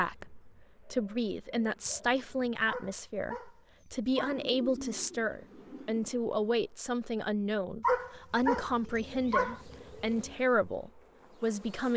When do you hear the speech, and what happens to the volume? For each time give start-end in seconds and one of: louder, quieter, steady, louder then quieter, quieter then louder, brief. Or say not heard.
0.0-11.9 steady.